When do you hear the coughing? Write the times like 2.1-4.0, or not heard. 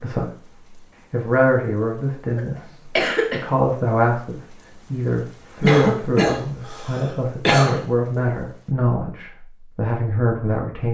2.4-3.5, 5.6-7.8.